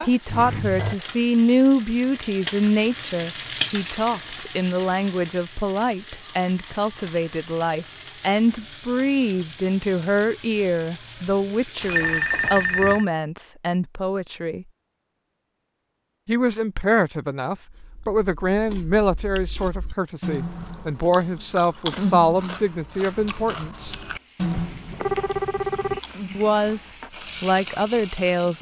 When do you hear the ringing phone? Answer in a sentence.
The ringing phone can be heard from 0.2 to 0.9 s, from 11.8 to 13.1 s and from 24.5 to 26.0 s.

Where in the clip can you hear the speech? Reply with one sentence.
You can hear the speech from 0.0 to 14.7 s, from 16.2 to 23.9 s and from 26.4 to 28.5 s.